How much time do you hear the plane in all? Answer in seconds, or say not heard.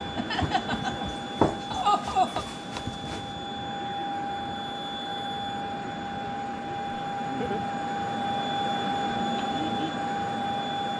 11 s.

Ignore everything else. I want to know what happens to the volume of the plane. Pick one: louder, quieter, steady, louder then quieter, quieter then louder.
louder.